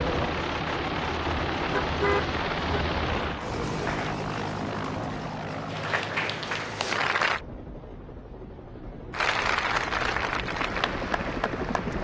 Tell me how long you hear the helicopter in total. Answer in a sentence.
You can hear the helicopter for 12 seconds altogether.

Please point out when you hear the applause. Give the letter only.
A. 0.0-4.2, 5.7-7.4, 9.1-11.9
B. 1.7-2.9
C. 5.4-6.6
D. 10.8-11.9
A.